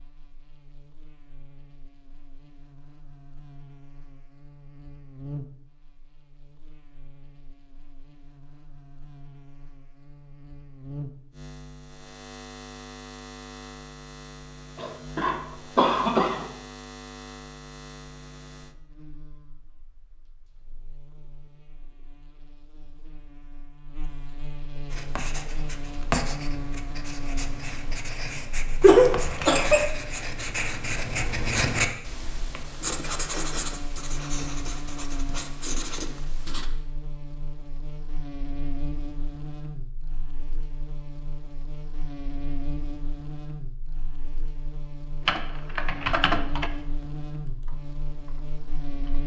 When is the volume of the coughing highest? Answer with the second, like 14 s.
29 s.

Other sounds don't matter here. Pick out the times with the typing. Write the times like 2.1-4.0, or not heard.
45.2-49.2.